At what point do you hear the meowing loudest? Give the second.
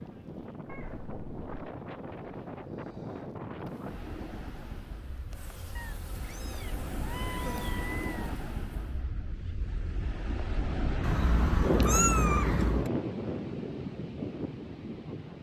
12 s.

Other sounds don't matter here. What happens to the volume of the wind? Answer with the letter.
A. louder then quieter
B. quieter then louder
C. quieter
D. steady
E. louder
E.